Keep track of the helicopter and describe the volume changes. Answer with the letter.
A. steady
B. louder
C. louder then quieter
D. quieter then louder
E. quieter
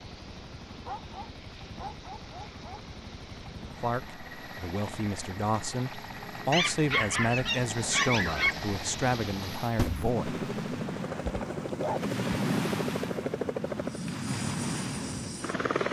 B.